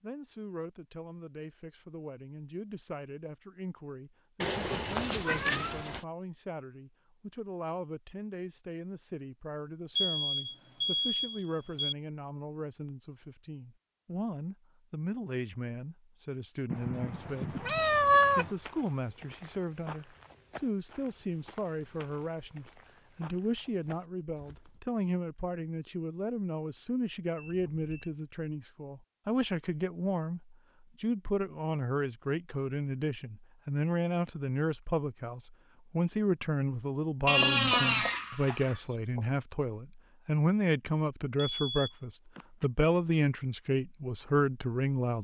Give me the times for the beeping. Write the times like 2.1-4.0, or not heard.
9.9-11.9, 27.4-28.1, 41.4-42.6.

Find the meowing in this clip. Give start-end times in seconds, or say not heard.
4.4-6.0, 16.7-18.5, 37.2-39.2.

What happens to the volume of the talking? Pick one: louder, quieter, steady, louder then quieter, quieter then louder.
louder.